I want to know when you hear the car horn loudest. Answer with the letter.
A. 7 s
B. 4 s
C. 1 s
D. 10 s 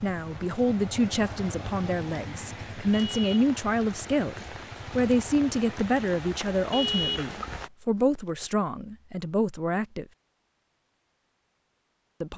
A.